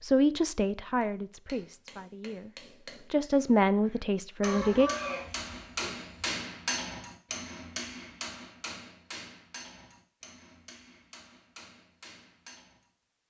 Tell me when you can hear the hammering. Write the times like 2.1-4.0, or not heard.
1.0-12.9.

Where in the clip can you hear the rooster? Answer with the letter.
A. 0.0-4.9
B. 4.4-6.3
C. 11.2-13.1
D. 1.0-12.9
B.